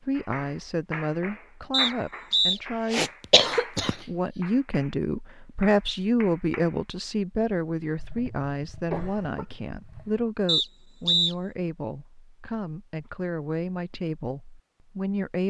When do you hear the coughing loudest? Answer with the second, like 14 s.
3 s.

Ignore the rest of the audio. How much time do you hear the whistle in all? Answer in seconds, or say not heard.
2 s.